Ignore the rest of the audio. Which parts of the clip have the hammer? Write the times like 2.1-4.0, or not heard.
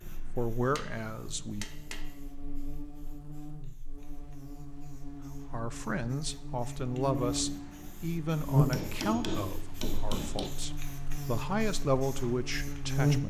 0.7-2.1, 8.7-10.5.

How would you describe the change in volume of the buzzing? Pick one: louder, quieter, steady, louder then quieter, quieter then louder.
louder then quieter.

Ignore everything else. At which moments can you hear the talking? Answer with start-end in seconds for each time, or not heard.
0.1-1.6, 5.2-13.2.